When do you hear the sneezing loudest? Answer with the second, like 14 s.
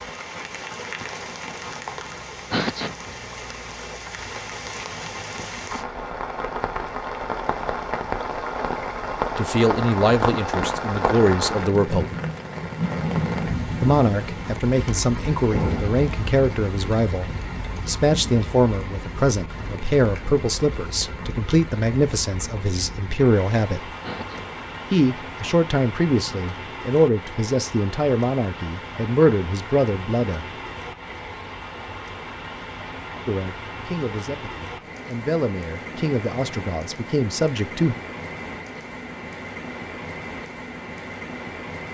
3 s.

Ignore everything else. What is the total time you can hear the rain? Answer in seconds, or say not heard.
42 s.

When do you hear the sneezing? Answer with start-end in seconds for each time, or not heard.
2.5-3.1, 24.0-24.6.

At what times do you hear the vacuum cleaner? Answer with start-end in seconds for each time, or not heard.
not heard.